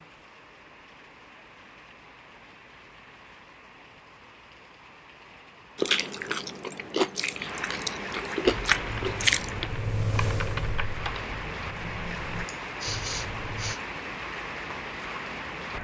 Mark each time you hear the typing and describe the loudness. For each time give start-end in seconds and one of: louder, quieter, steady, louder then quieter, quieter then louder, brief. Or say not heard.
8.4-13.8 louder then quieter.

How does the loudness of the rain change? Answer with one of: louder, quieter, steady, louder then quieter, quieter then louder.
louder.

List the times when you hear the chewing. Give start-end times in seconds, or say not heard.
5.8-9.7.